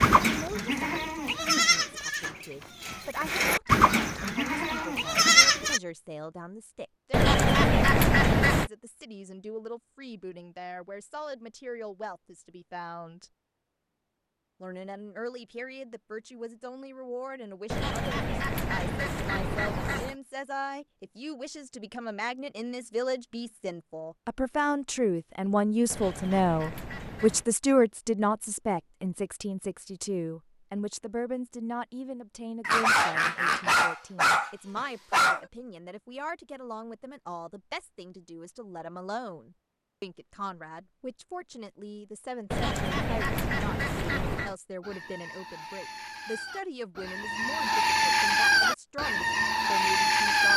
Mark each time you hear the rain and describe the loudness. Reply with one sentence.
You can't hear the rain here.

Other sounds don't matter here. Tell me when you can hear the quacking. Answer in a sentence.
The quacking can be heard from 7.1 to 8.7 s, from 17.7 to 20.1 s, from 25.9 to 27.4 s and from 42.5 to 44.5 s.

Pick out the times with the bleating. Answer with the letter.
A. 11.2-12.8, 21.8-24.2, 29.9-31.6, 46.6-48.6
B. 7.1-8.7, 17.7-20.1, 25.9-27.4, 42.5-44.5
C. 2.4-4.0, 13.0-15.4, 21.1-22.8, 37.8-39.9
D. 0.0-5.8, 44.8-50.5
D.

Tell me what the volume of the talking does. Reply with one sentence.
The loudness of the talking goes up, then down.